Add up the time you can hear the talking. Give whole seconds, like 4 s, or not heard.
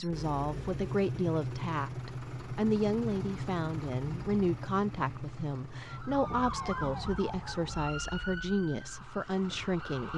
10 s.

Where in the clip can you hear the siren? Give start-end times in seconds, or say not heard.
5.8-10.1.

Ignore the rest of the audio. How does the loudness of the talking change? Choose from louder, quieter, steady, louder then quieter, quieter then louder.
steady.